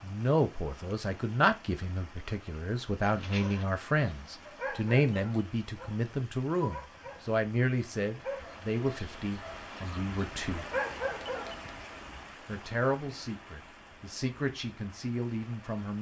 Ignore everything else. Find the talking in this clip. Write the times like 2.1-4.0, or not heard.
0.0-10.7, 12.4-15.9.